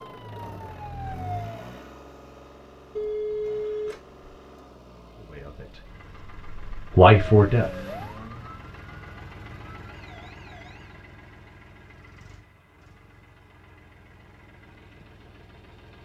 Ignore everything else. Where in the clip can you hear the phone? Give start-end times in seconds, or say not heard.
3.0-4.2.